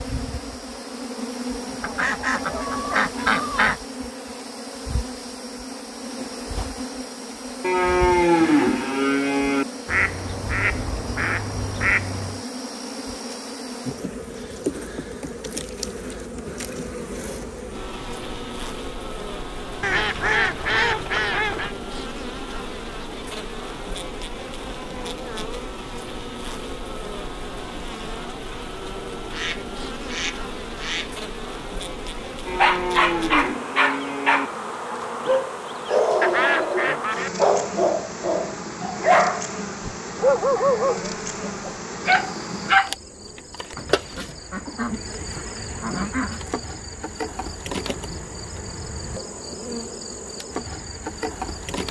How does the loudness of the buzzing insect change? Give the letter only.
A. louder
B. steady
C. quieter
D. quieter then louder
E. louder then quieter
B.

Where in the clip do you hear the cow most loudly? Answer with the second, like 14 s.
8 s.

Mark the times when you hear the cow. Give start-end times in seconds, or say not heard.
7.6-9.7, 32.5-34.5.